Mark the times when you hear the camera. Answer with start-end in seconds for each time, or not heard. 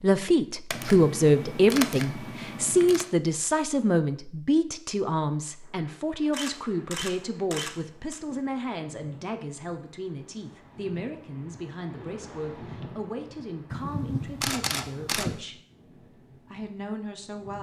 0.7-3.0, 6.3-8.2, 13.7-15.3.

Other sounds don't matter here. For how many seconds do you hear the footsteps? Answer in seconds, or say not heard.
not heard.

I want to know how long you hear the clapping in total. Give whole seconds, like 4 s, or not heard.
not heard.